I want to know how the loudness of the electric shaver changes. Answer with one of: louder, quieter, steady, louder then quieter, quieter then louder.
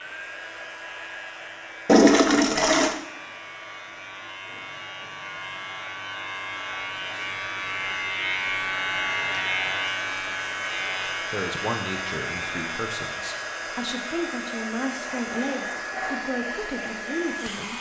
louder then quieter.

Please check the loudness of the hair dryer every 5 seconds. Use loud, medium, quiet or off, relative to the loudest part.
medium, medium, loud, loud.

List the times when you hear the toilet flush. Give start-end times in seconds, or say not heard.
1.9-3.0, 14.9-16.1.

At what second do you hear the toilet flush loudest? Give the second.
2 s.